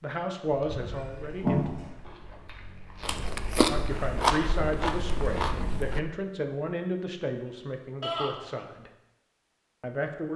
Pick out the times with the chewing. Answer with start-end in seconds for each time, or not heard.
0.5-6.0.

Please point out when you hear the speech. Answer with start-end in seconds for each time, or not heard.
0.0-1.7, 3.6-8.9, 9.8-10.3.